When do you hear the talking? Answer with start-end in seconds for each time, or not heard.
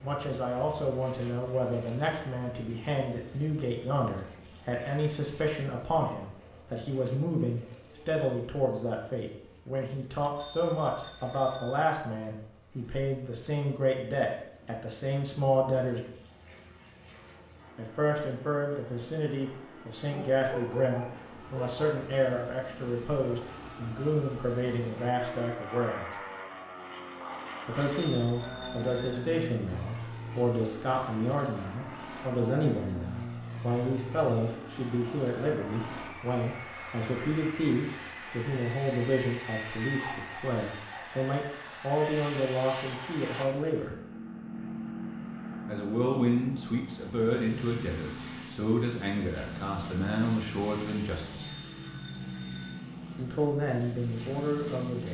0.0-16.1, 17.8-26.1, 27.6-43.9, 45.6-51.5, 53.1-55.0.